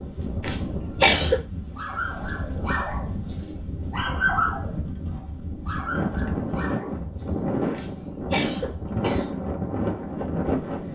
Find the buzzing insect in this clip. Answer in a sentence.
You can't hear the buzzing insect here.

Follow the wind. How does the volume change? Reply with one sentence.
The loudness of the wind goes up.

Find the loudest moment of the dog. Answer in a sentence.
The loudest moment of the dog is at 4 seconds.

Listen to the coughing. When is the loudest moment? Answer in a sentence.
The loudest moment of the coughing is at 1 second.